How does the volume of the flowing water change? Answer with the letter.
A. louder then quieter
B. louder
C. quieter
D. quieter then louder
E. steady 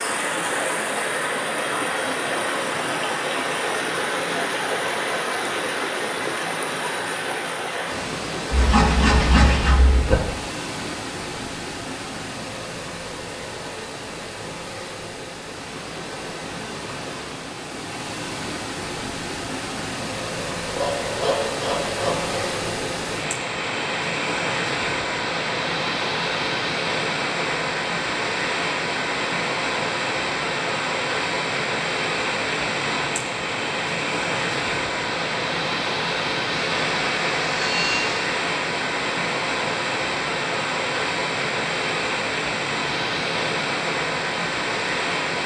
D.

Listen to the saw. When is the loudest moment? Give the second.
9 s.